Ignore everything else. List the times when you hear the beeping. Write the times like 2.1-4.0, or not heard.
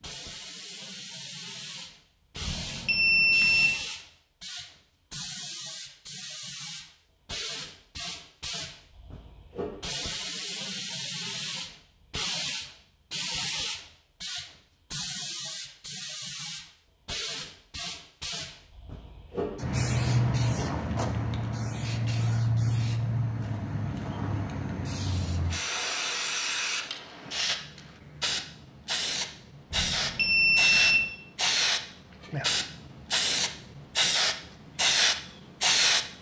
2.4-3.8, 29.7-31.1.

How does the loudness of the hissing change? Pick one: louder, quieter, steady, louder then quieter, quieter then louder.
louder.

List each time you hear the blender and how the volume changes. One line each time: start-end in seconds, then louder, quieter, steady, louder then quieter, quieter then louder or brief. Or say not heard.
not heard.